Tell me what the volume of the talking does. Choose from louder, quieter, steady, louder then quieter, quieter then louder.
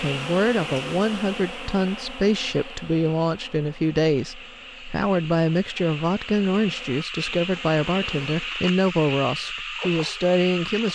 steady.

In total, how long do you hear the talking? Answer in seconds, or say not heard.
11 s.